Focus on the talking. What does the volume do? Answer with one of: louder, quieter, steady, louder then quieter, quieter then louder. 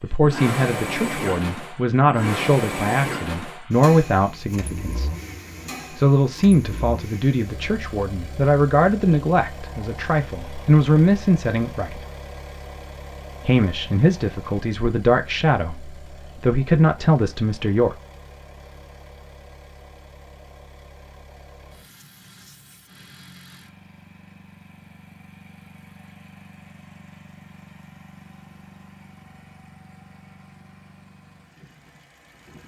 steady.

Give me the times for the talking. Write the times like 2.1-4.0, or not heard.
0.0-5.1, 5.9-12.1, 13.4-17.9.